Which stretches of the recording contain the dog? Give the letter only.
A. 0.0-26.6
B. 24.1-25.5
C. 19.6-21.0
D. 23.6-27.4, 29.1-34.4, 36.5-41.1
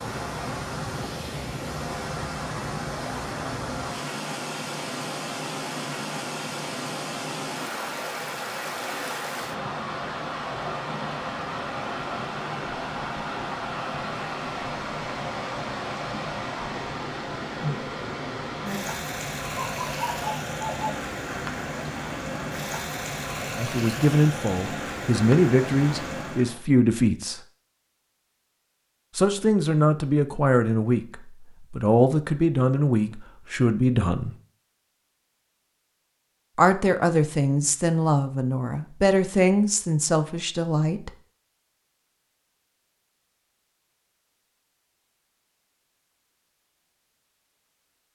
C.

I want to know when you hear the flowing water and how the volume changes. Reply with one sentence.
The flowing water can be heard from 0.0 to 26.6 s, at a steady volume.